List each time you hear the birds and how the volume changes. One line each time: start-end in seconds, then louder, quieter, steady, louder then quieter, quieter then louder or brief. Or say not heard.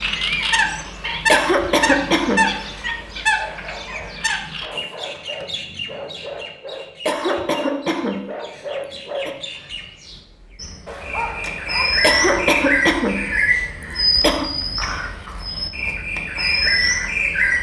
0.0-17.5 quieter then louder.